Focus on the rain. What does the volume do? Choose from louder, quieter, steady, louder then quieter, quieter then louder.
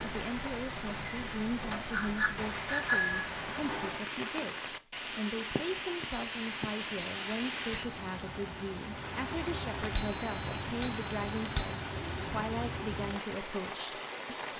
steady.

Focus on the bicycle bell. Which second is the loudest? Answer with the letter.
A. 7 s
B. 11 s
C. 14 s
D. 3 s
D.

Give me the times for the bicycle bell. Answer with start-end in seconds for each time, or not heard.
1.9-3.2, 6.1-8.0, 9.9-11.8.